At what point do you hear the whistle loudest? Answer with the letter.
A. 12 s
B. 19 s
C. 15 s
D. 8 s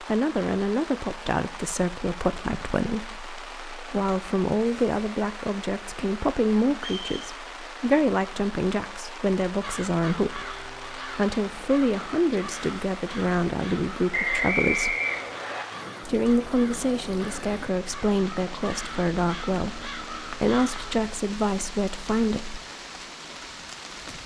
C.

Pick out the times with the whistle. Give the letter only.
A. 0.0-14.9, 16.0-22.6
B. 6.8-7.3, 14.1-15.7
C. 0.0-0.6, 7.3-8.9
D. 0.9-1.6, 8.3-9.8
B.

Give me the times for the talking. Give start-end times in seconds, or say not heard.
0.0-14.9, 16.0-22.6.